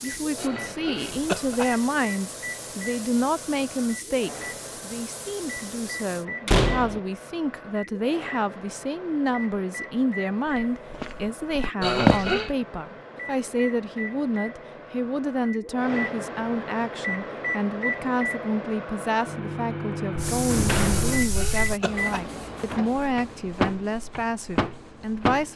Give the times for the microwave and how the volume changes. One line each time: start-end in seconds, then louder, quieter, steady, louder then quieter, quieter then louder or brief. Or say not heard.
0.0-25.5 louder.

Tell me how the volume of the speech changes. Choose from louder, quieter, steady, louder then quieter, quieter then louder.
steady.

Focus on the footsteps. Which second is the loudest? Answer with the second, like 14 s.
12 s.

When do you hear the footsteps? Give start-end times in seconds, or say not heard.
10.4-12.2.